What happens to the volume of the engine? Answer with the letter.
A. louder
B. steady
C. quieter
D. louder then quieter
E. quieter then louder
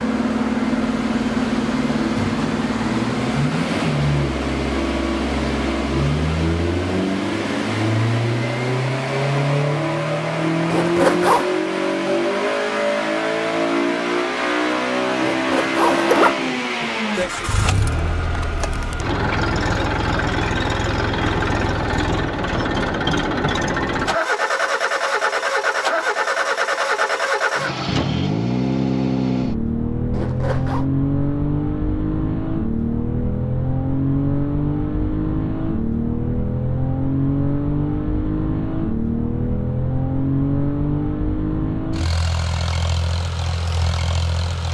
B.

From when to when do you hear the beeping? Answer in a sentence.
The beeping can't be heard in this clip.